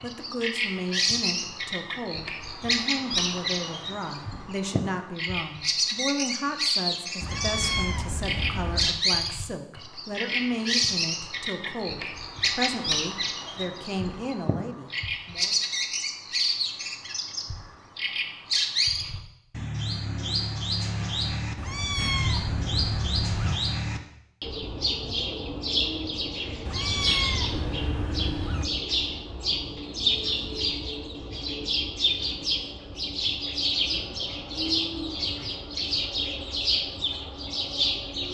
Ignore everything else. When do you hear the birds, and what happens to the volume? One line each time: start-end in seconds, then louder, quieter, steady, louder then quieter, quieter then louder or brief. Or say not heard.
0.0-38.2 steady.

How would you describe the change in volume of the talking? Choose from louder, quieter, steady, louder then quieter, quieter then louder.
steady.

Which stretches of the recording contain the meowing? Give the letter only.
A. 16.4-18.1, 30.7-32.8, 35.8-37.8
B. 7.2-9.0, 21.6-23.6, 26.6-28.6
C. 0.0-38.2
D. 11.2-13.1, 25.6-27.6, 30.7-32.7
B.